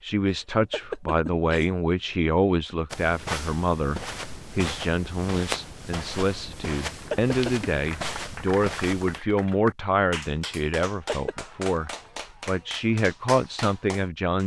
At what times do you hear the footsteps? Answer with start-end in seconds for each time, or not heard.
2.9-9.2.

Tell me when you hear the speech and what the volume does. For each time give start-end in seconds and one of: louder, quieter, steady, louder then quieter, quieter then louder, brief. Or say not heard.
0.0-14.4 steady.